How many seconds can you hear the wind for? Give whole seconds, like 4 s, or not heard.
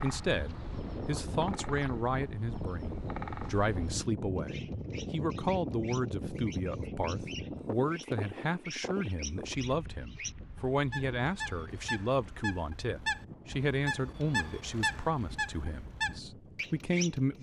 17 s.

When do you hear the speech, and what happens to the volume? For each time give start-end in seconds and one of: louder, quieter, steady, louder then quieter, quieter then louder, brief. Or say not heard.
0.0-17.3 steady.